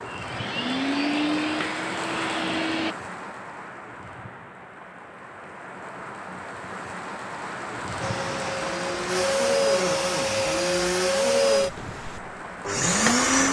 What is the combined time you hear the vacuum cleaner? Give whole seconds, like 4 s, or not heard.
8 s.